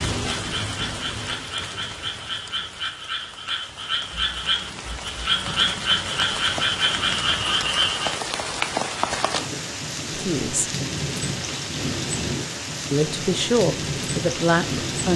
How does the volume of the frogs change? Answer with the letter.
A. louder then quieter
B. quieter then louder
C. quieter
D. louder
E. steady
D.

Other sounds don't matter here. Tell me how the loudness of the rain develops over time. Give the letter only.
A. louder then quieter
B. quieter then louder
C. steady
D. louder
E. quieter
D.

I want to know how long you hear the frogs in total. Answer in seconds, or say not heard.
8 s.